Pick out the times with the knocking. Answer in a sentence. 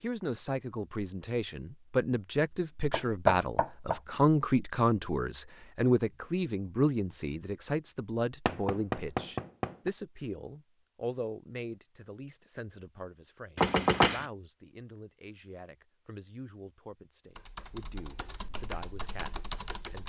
The knocking can be heard from 2.9 to 4.0 s, from 8.4 to 9.9 s and from 13.6 to 14.2 s.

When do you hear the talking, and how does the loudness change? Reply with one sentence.
The talking can be heard from 0.0 to 20.0 s, getting quieter.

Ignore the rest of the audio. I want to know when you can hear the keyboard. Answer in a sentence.
The keyboard can be heard from 17.4 to 20.0 s.